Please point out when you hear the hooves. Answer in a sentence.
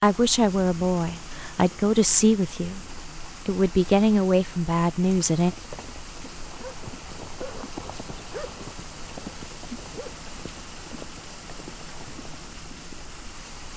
The hooves can be heard from 5.3 to 13.1 s.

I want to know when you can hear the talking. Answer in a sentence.
You can hear the talking from 0.0 to 5.5 s.